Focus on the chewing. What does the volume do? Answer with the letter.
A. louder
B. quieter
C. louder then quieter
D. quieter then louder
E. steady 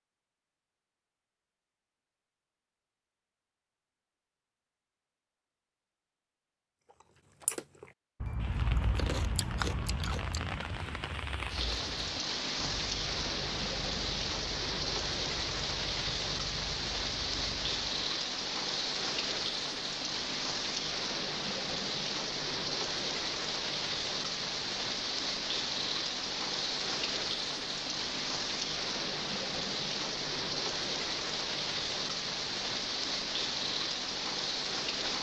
B.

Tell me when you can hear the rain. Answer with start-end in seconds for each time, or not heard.
8.3-35.1.